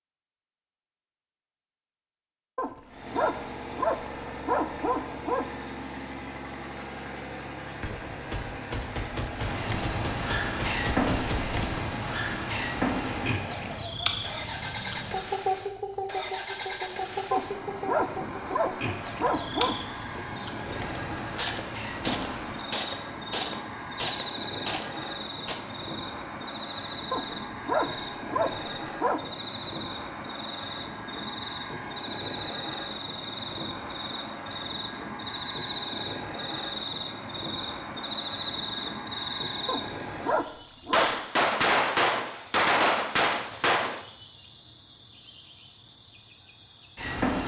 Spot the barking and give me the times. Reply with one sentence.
The barking can be heard from 2.5 to 5.5 s, from 17.3 to 19.8 s, from 27.1 to 29.2 s and from 39.6 to 41.1 s.